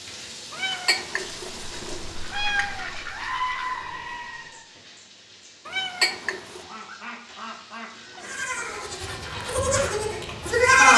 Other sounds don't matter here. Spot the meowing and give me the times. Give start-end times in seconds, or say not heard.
0.5-2.9, 5.7-6.7.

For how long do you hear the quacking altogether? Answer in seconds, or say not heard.
4 s.